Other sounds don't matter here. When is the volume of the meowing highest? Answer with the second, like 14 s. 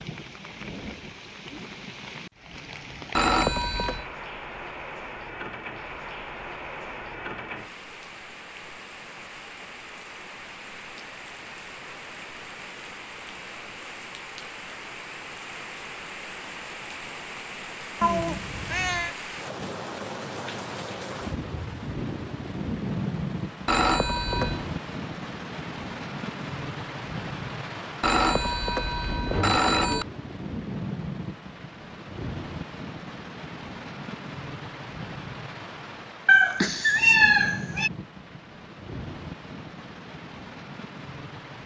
37 s.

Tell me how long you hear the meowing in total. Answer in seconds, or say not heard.
3 s.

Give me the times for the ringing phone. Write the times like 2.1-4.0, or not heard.
3.1-4.0, 23.6-24.6, 28.0-30.1.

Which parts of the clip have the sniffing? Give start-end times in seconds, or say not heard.
not heard.